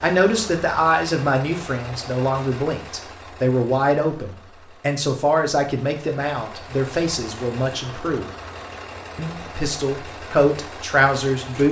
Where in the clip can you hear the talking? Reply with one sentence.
You can hear the talking from 0.0 to 8.3 s and from 9.2 to 11.6 s.